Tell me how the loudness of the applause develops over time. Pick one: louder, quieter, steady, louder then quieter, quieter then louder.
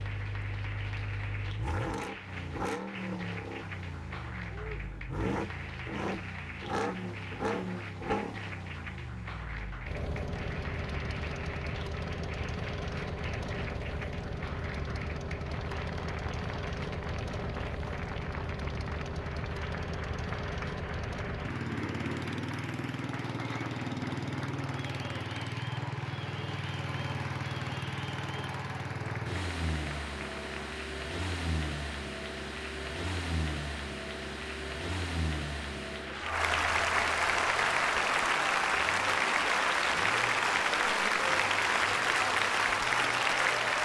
louder.